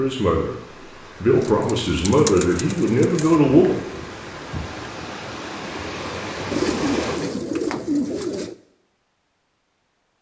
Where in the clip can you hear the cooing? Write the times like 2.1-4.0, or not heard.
1.4-3.4, 6.5-8.6.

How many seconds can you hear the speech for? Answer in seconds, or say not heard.
3 s.